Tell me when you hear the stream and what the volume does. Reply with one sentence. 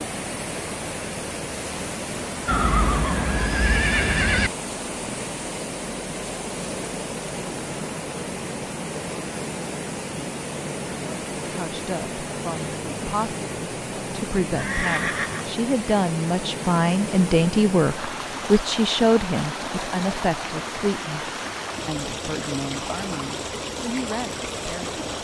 The stream can be heard from 0.0 to 25.1 s, at a steady volume.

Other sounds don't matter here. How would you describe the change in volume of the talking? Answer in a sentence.
The loudness of the talking goes up, then down.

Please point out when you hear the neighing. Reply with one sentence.
The neighing can be heard from 2.5 to 4.5 s and from 14.6 to 15.5 s.